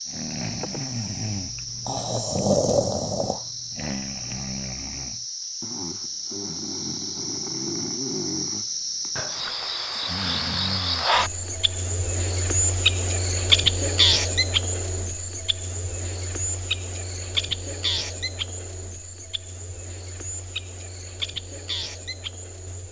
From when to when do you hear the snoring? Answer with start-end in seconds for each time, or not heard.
0.1-11.9.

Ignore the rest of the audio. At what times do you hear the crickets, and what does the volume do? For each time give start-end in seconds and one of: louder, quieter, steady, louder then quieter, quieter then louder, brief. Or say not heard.
0.0-22.8 louder then quieter.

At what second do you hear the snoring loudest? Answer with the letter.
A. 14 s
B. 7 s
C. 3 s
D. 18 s
C.